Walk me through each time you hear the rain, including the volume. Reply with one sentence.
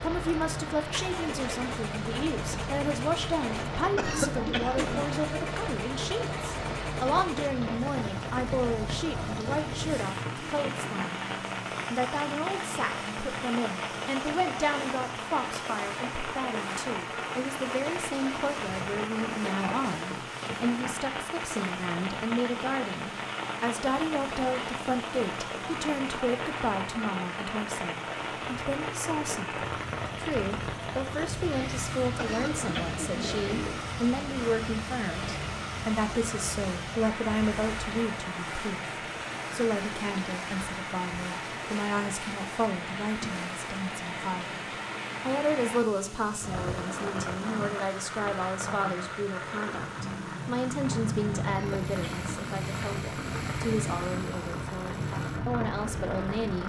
You can hear the rain from 0.0 to 56.6 s, at a steady volume.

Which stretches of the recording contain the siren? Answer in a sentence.
You can't hear the siren here.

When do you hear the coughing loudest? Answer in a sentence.
The volume of the coughing peaks at 4 seconds.